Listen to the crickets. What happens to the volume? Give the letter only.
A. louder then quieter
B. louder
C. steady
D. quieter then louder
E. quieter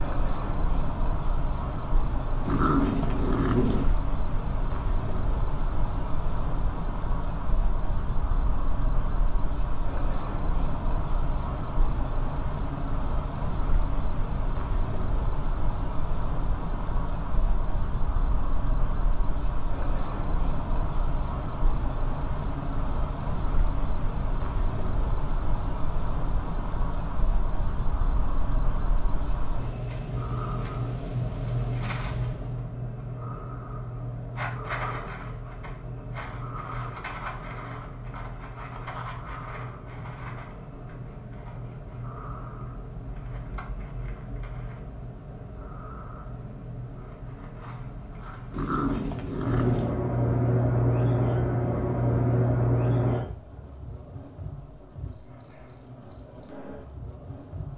D.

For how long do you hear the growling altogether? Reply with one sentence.
The growling can be heard for 3 seconds in total.